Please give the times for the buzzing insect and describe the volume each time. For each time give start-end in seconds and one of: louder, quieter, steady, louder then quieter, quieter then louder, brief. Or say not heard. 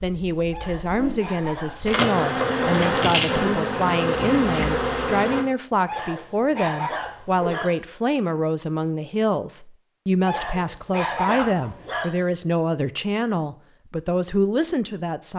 0.0-5.5 louder.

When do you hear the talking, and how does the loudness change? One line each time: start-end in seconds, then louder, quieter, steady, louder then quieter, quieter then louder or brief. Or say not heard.
0.0-15.3 steady.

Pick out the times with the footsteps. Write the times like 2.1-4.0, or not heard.
not heard.